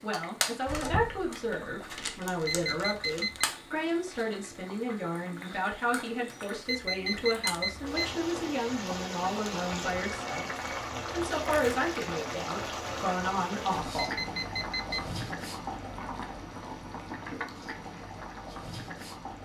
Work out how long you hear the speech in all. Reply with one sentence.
The speech can be heard for 14 seconds in total.